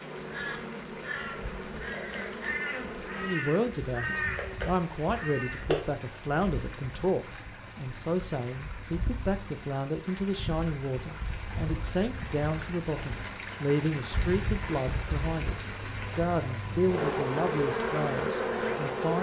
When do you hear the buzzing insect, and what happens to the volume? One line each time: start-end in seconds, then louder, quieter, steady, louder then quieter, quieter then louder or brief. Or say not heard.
0.0-19.1 quieter then louder.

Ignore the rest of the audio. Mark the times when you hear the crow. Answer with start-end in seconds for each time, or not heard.
0.3-6.0.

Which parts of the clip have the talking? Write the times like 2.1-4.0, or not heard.
3.1-19.1.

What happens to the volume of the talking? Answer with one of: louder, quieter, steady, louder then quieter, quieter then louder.
steady.